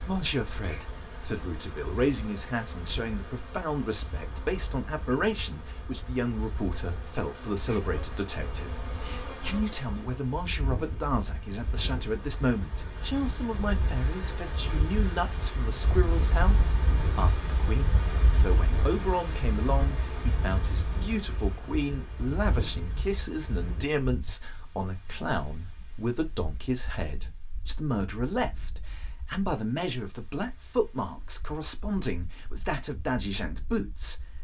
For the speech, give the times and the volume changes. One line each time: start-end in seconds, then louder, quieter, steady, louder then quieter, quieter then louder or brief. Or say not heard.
0.0-34.4 steady.